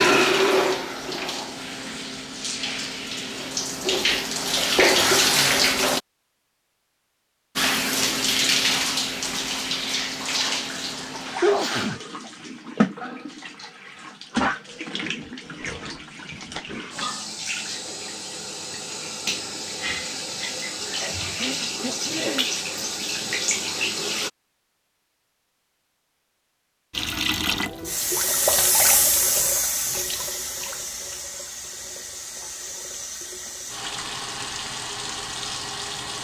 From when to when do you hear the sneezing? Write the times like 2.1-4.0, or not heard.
11.4-12.0, 21.0-22.4.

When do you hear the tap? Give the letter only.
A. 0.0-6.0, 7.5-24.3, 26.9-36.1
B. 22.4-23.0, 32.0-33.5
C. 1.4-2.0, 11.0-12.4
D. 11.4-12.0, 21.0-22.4
A.